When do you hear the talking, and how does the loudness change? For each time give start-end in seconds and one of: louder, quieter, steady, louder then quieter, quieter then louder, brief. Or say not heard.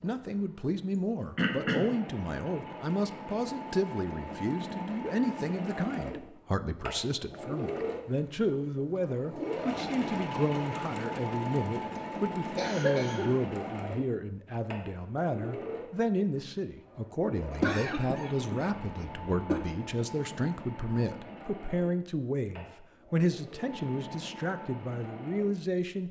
0.0-26.0 steady.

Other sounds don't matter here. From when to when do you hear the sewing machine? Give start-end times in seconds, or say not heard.
0.0-26.0.